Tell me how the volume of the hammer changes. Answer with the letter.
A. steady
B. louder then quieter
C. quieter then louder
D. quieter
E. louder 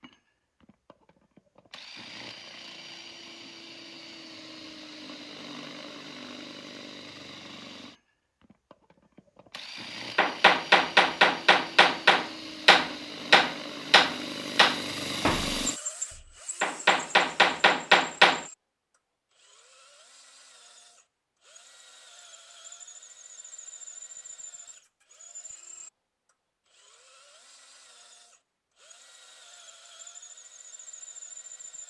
C.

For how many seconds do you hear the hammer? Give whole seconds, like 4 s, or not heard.
8 s.